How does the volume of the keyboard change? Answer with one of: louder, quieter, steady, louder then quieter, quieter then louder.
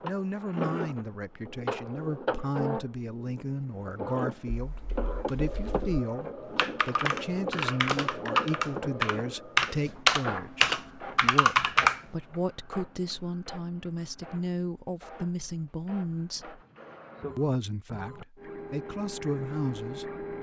louder.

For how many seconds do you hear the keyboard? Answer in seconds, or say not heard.
7 s.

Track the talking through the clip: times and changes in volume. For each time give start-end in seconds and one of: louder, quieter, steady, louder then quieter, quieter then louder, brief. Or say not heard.
0.0-16.6 steady
17.4-20.2 brief.